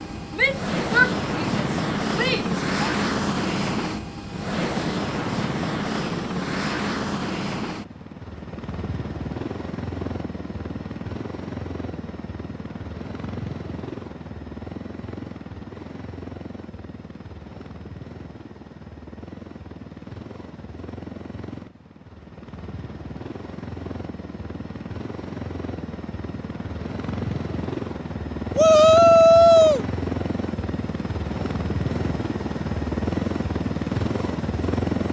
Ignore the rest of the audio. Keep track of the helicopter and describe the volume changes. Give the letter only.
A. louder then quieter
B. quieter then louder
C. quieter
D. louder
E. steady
B.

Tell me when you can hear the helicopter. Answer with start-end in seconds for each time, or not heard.
0.0-35.0.